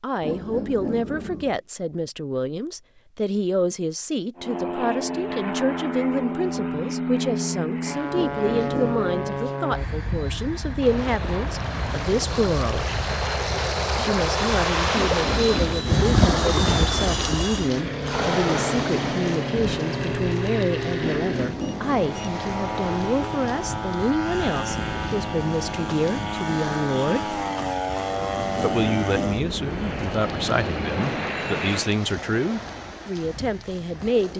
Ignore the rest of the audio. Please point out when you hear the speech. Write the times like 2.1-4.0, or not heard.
0.0-12.8, 13.9-27.4, 28.6-34.3.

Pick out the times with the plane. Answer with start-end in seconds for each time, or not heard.
4.3-32.0.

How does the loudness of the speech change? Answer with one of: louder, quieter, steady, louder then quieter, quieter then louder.
steady.